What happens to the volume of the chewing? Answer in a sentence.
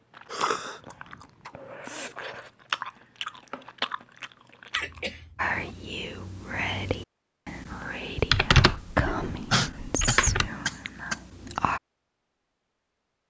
The loudness of the chewing goes up, then down.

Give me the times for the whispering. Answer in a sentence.
You can hear the whispering from 5.3 to 11.8 s.